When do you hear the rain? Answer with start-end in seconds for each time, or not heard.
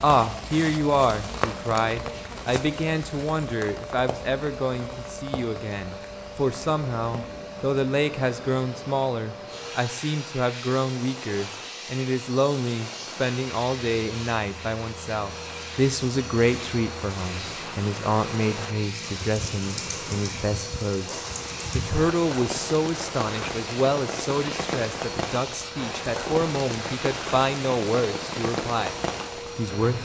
0.0-30.0.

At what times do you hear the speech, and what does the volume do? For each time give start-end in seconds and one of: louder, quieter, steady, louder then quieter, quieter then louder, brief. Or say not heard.
0.0-28.9 steady
29.6-30.0 brief.